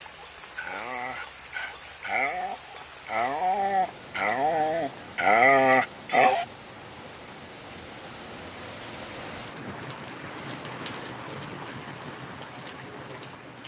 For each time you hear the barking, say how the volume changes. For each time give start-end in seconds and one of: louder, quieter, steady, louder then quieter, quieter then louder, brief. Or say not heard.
0.6-6.5 louder.